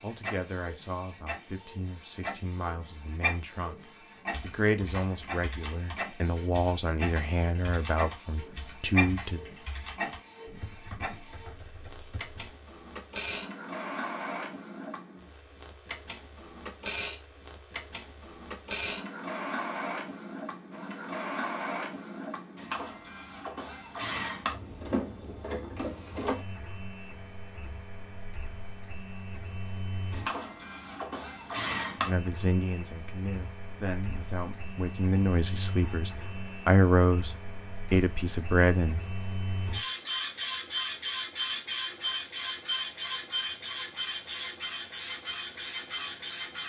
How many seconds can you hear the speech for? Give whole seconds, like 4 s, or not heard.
16 s.